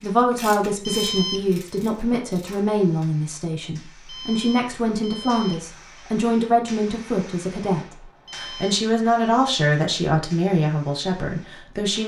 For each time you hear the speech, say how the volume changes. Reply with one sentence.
The speech can be heard from 0.0 to 12.0 s, at a steady volume.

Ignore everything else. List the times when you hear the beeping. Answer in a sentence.
The beeping can be heard from 0.8 to 1.6 s, from 4.0 to 6.0 s and from 8.2 to 8.8 s.